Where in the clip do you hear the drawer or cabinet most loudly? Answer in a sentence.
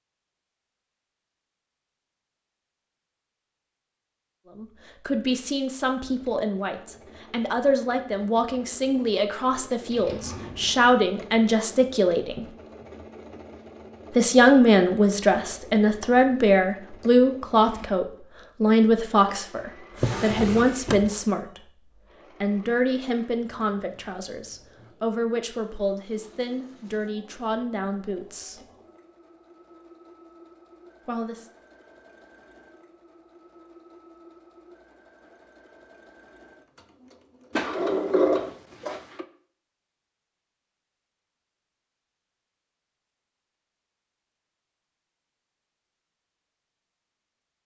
The loudest moment of the drawer or cabinet is at 38 seconds.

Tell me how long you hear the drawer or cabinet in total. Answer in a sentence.
You can hear the drawer or cabinet for 4 seconds altogether.